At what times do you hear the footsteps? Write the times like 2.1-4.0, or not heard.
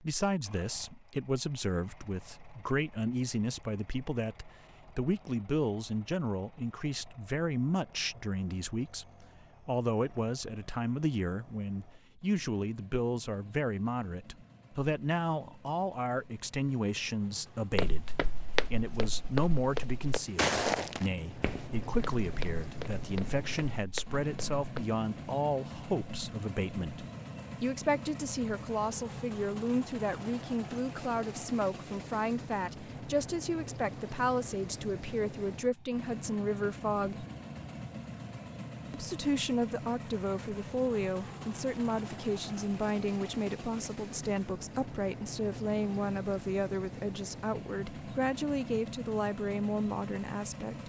17.8-24.9.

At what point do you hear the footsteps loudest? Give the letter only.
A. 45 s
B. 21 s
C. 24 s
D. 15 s
B.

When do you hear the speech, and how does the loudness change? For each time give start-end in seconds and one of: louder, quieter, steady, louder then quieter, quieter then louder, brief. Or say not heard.
0.0-37.2 steady
38.9-50.8 steady.